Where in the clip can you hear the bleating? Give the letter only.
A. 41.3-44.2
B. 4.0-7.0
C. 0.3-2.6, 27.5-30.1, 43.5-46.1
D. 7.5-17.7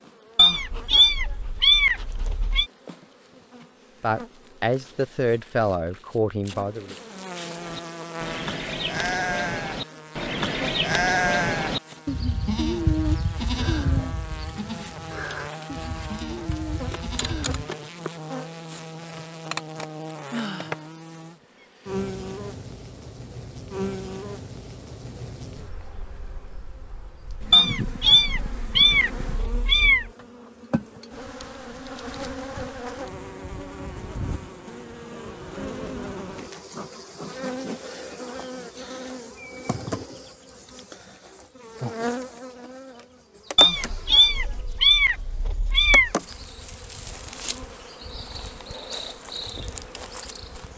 D.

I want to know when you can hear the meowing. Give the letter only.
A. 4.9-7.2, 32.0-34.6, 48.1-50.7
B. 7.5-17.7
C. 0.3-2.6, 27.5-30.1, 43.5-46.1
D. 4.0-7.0
C.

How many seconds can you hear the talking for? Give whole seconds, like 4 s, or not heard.
3 s.